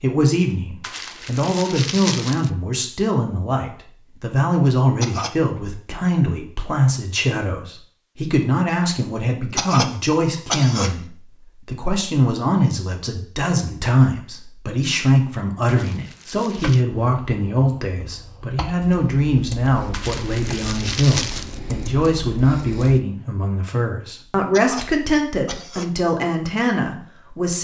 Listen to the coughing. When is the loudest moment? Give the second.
10 s.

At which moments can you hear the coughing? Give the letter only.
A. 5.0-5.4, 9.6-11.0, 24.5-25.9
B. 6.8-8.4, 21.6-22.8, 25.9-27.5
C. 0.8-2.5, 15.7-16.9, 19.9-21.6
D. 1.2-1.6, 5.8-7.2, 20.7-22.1
A.